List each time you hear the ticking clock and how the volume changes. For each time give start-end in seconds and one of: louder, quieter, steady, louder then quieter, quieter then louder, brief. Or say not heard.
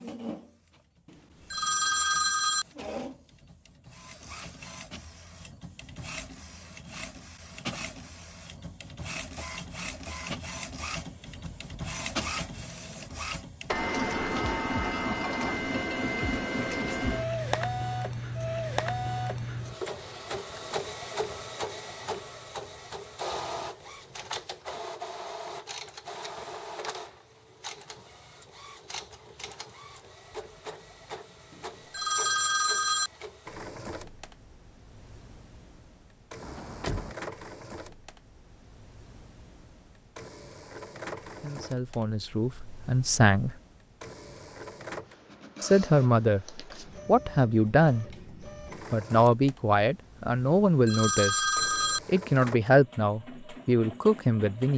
not heard.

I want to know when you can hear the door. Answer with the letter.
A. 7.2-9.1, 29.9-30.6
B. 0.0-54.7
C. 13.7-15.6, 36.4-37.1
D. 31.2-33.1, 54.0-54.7
C.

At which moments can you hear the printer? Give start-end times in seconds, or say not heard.
0.0-54.7.